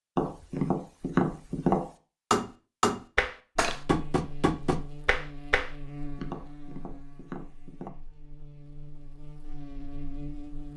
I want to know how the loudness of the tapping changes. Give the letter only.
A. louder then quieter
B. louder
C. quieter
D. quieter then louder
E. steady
C.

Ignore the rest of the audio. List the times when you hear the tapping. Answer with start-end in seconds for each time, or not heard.
0.1-7.9.